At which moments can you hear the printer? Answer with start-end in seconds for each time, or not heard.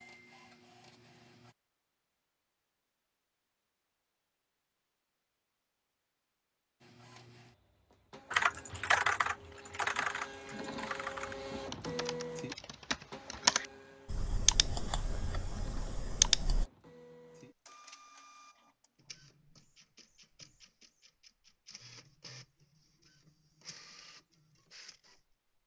0.0-1.6, 6.8-25.4.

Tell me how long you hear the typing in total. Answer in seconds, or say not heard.
8 s.